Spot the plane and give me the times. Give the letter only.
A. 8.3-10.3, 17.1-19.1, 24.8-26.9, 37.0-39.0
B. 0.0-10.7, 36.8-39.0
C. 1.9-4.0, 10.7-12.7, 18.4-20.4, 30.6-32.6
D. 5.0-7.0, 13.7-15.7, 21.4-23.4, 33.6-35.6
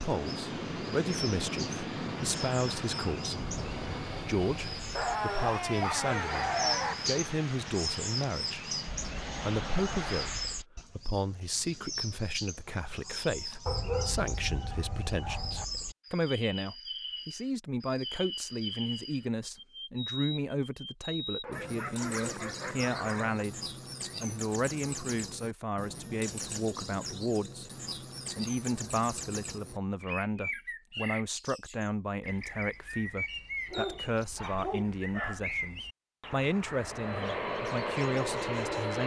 B.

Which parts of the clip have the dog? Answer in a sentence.
The dog can be heard from 5.0 to 7.0 s, from 13.7 to 15.7 s, from 21.4 to 23.4 s and from 33.6 to 35.6 s.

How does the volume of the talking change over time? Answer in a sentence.
The loudness of the talking stays about the same.